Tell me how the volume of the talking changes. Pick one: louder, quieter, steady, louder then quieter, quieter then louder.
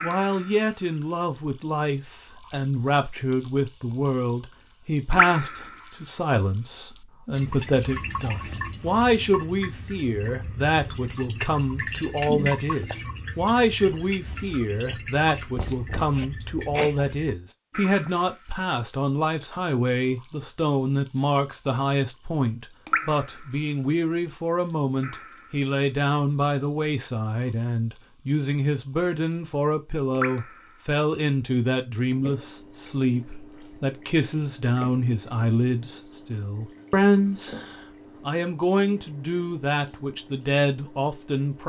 steady.